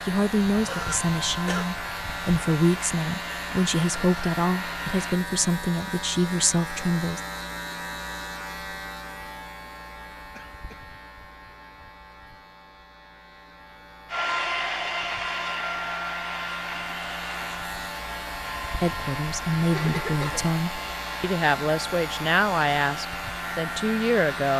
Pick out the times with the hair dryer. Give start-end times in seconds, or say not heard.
0.0-5.2, 14.1-24.5.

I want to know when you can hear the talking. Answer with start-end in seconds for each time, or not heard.
0.0-7.2, 18.8-24.5.